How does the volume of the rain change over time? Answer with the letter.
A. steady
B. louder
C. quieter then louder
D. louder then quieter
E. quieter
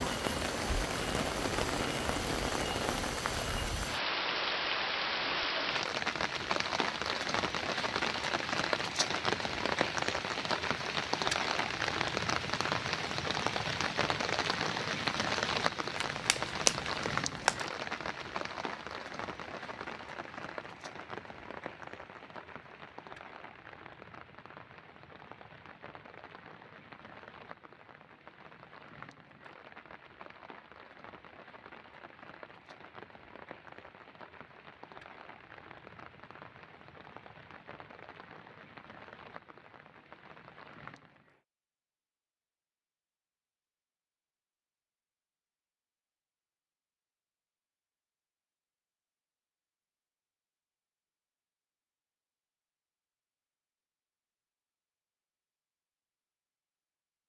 E.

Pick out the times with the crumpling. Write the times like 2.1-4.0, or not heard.
15.9-17.6.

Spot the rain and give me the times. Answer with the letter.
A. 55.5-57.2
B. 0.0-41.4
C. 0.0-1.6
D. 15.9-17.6
B.